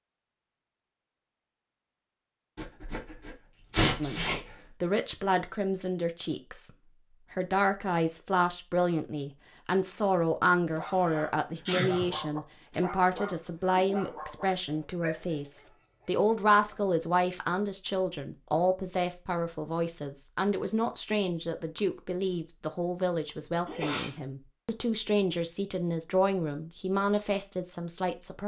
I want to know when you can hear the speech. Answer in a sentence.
The speech can be heard from 4.0 to 6.7 s and from 7.3 to 28.4 s.